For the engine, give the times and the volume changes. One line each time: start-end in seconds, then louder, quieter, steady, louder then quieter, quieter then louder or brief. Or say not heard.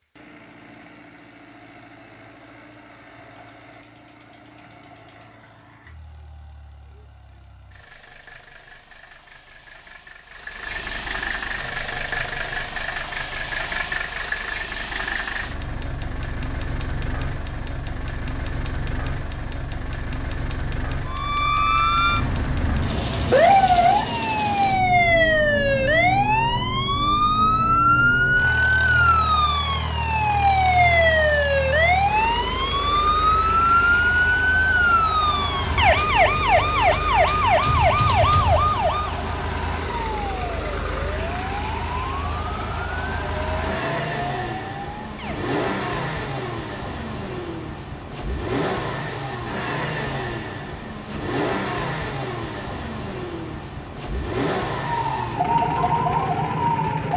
0.0-57.1 louder.